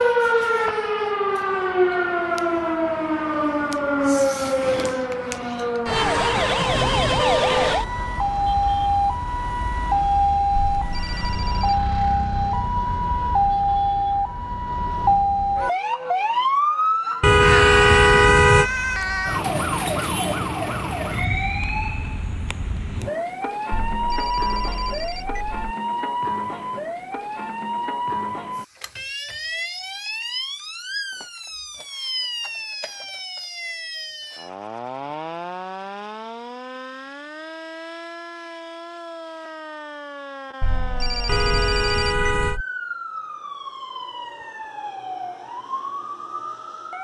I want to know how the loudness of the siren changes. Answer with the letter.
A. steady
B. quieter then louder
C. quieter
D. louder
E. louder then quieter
C.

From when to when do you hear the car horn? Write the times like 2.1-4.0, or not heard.
6.7-7.8, 17.2-18.7, 41.2-42.6.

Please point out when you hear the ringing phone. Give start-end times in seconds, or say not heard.
10.5-11.8, 23.7-25.5, 40.6-42.6.